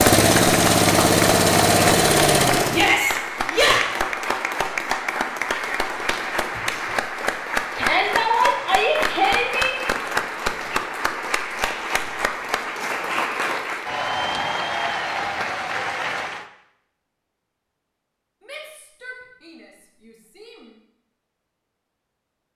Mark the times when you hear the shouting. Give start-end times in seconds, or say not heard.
2.7-3.9, 7.8-9.8, 18.4-20.8.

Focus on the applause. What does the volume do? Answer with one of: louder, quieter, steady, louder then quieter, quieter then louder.
steady.